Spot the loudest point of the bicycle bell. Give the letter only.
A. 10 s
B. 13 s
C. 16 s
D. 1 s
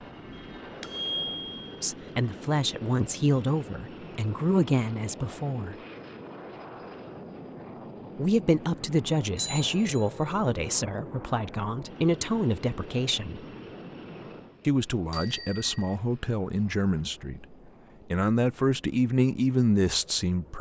D.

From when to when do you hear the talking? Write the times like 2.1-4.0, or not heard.
1.8-5.8, 8.2-13.4, 14.7-20.5.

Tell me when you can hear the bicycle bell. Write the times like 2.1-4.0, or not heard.
0.3-1.8, 9.3-10.4, 15.1-15.9.